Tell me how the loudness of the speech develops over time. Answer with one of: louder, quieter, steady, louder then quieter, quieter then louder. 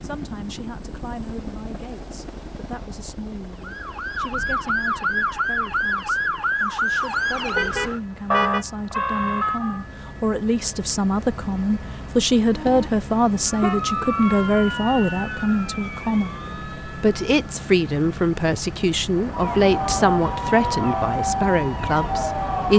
louder.